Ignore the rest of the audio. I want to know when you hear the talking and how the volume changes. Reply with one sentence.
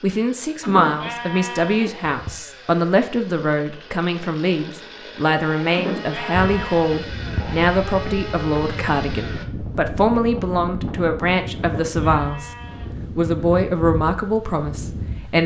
You can hear the talking from 0.0 to 12.5 s, at a steady volume; and briefly from 13.2 to 15.4 s.